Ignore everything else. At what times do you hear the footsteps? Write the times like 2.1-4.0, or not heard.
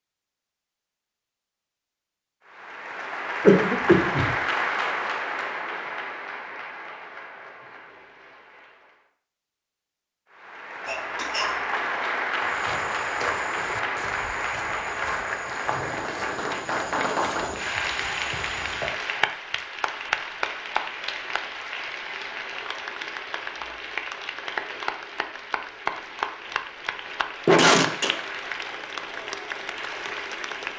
12.4-18.9.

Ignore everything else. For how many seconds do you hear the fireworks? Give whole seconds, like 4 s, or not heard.
not heard.